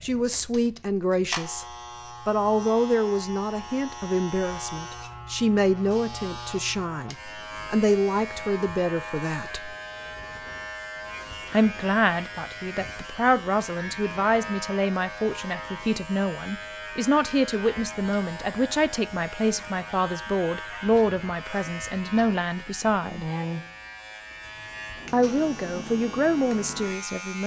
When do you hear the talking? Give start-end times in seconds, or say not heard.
0.0-1.6, 2.2-9.8, 11.5-23.2, 25.1-27.4.